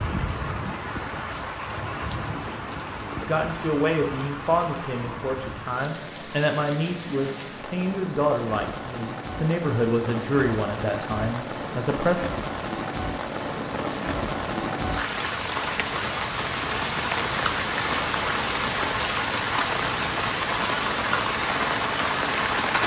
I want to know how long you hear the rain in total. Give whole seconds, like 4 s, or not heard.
23 s.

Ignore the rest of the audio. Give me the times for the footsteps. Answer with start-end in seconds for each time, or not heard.
not heard.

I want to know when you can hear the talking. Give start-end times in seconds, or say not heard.
3.2-12.2.